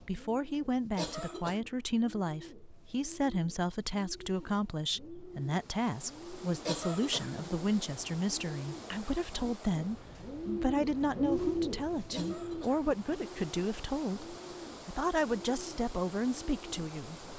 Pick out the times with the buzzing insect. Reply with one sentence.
The buzzing insect can't be heard in this clip.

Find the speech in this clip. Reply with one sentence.
The speech can be heard from 0.0 to 17.2 s.